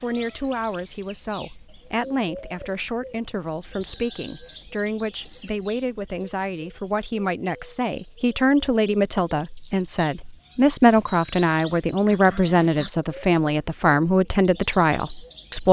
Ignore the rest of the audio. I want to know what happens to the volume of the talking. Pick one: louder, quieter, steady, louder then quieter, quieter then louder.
louder.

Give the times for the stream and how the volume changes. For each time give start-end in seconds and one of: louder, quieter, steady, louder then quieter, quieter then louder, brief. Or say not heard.
not heard.